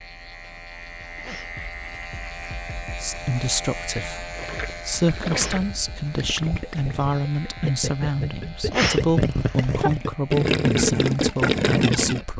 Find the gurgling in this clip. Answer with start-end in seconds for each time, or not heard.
4.3-12.2.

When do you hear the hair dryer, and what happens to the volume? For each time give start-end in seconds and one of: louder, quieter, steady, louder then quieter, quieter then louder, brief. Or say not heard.
not heard.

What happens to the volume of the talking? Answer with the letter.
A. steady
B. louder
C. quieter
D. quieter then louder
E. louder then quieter
A.